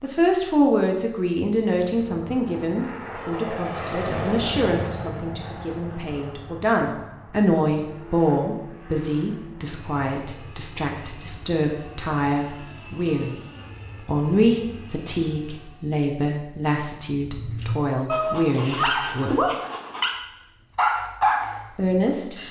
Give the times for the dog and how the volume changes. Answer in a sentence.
The dog can be heard from 17.2 to 22.4 s, at a steady volume.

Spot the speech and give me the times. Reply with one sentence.
The speech can be heard from 0.0 to 13.3 s, from 14.1 to 19.4 s and from 21.8 to 22.4 s.